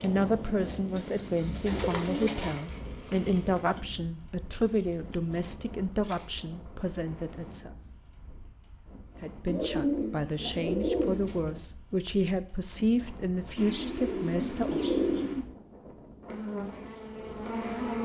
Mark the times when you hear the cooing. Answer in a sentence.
You can hear the cooing from 0.9 to 2.6 s, from 4.7 to 6.3 s, from 9.4 to 11.6 s and from 13.6 to 15.4 s.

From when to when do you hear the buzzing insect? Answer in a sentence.
The buzzing insect can be heard from 0.0 to 3.8 s and from 16.2 to 18.0 s.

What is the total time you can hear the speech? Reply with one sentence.
You can hear the speech for 13 seconds altogether.